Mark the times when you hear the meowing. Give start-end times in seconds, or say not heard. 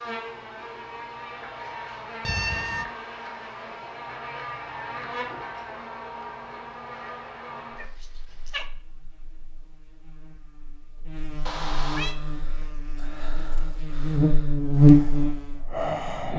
2.2-2.9, 7.8-8.7, 11.4-12.2.